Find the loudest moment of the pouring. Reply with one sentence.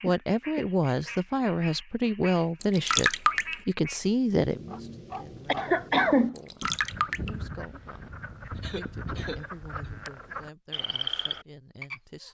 The volume of the pouring peaks at 3 seconds.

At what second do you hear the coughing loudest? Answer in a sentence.
The volume of the coughing peaks at 6 seconds.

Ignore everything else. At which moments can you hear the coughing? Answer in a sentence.
You can hear the coughing from 0.1 to 0.7 s, from 5.5 to 6.3 s and from 8.6 to 9.9 s.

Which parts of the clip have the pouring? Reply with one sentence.
You can hear the pouring from 2.6 to 3.5 s and from 6.3 to 7.3 s.